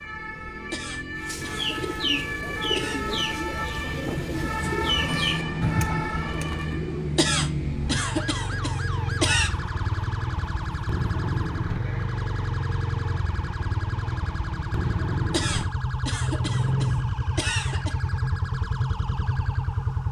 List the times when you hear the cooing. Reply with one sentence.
You can hear the cooing from 1.2 to 6.8 s.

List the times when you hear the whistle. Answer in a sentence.
You can't hear the whistle here.